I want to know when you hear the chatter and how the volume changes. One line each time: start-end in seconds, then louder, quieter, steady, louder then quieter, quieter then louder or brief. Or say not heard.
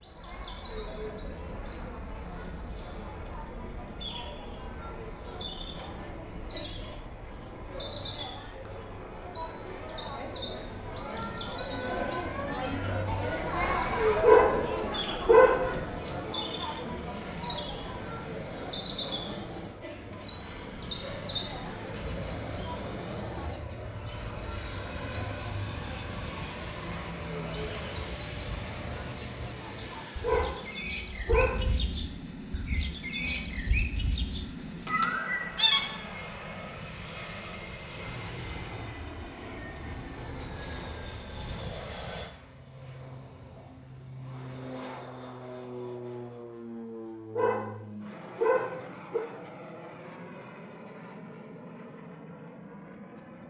0.0-30.1 louder then quieter.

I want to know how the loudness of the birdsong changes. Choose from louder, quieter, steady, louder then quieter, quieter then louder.
louder.